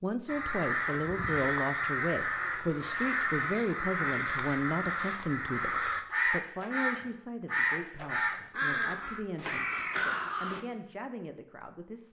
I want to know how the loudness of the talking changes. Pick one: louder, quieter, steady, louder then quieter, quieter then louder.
quieter.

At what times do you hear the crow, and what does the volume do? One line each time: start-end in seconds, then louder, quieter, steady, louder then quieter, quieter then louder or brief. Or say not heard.
0.2-10.6 steady.